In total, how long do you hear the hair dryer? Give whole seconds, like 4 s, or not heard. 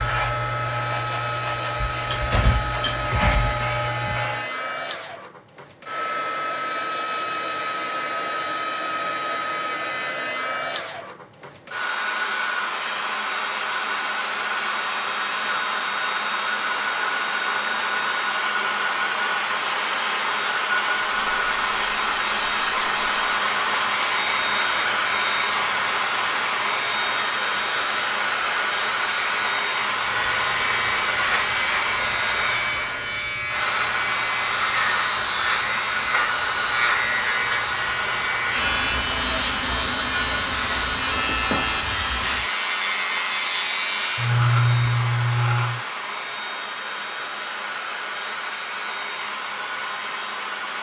51 s.